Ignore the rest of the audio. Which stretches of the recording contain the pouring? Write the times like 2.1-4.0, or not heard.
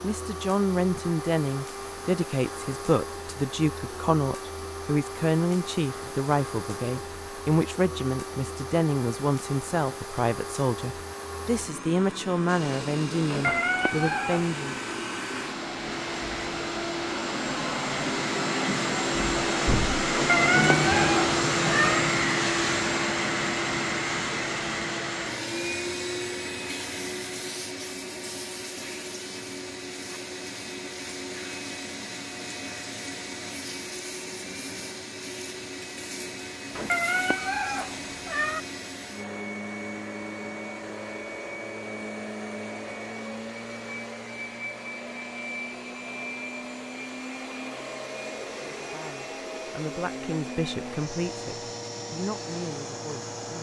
not heard.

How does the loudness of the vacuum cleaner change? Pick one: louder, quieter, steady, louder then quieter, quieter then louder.
louder then quieter.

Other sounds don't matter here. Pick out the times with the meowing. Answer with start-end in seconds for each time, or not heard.
13.2-14.6, 20.1-22.0, 36.8-38.6.